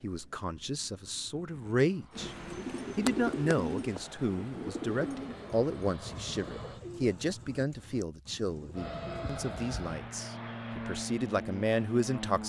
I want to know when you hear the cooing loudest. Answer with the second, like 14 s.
3 s.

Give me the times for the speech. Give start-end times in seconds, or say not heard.
0.0-2.4, 3.0-12.4.